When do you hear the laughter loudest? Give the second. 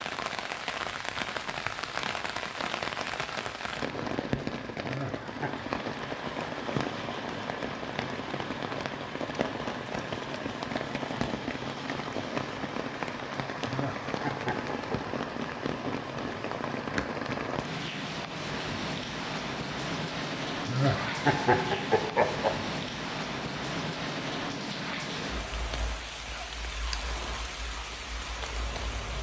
21 s.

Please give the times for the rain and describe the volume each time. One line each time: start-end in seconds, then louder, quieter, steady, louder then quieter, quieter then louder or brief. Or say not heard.
0.0-29.1 steady.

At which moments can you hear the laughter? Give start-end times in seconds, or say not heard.
4.8-5.6, 13.7-15.0, 20.6-22.5.